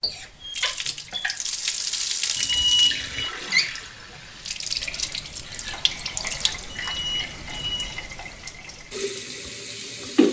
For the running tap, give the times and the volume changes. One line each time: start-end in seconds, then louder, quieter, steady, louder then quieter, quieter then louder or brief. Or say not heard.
0.0-10.2 quieter.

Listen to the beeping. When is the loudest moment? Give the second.
3 s.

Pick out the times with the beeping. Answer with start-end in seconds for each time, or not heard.
2.4-3.3, 6.7-8.1.